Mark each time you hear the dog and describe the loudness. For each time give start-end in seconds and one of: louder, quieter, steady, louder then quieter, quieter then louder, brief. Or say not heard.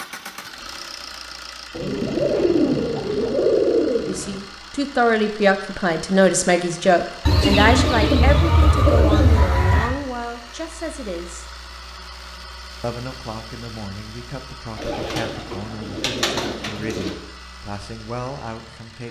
not heard.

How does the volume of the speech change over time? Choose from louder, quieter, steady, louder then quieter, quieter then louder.
quieter.